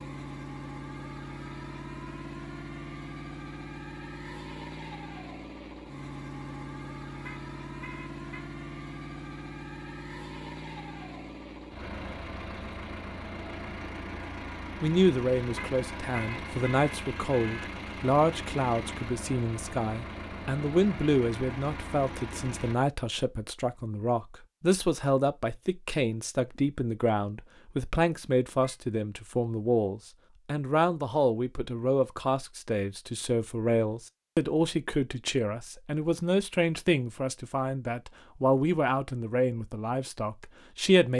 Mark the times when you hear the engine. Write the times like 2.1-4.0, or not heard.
0.0-22.8.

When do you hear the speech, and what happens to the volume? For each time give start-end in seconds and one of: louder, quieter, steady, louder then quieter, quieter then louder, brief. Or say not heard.
14.8-41.1 steady.